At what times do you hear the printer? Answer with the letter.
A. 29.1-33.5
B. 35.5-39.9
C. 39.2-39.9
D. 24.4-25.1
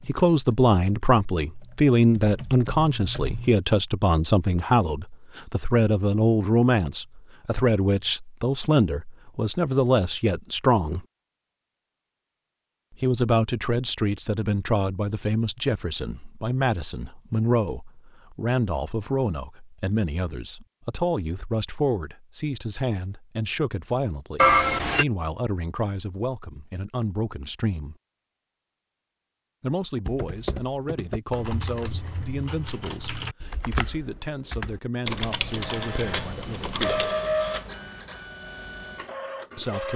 B.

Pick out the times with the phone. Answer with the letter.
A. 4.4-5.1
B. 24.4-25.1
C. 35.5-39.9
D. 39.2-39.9
B.